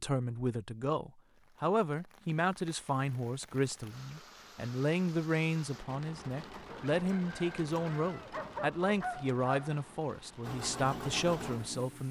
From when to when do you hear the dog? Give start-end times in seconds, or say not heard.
8.3-9.8.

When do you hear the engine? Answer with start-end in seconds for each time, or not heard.
10.4-12.0.